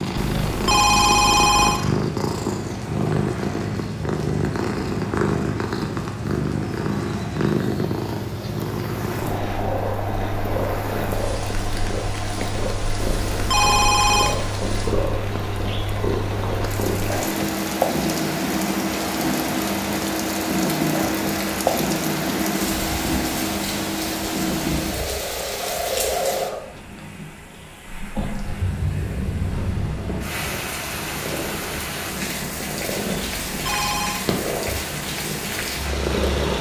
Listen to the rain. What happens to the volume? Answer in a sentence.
The loudness of the rain goes up.